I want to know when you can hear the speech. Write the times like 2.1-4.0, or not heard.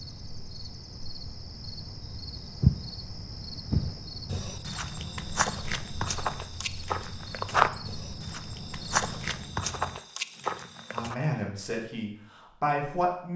10.9-13.3.